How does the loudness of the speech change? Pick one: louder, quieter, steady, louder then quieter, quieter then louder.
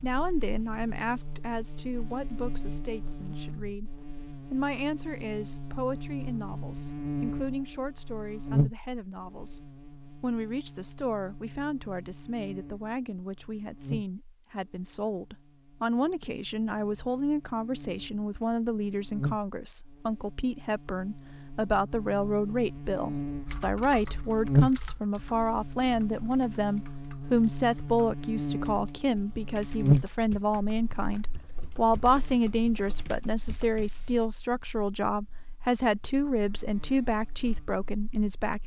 louder.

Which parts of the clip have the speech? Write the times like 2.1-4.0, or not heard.
0.0-38.6.